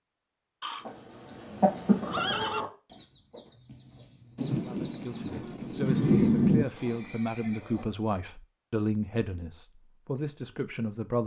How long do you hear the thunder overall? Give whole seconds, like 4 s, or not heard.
2 s.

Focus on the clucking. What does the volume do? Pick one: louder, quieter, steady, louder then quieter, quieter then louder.
quieter.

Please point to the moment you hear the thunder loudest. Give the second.
6 s.